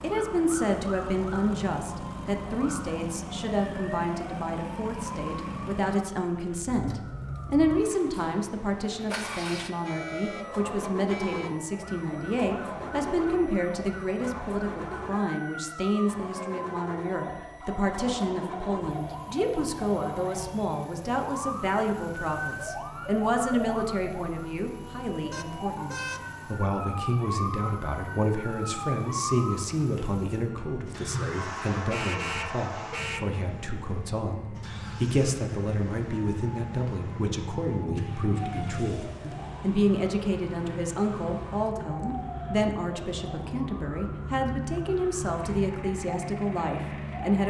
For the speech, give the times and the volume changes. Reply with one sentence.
You can hear the speech from 0.0 to 47.4 s, at a steady volume.